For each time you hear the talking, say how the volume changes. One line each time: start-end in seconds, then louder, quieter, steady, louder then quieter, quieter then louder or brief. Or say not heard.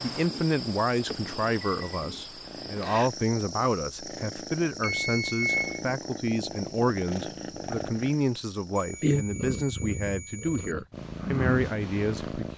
0.0-12.5 steady.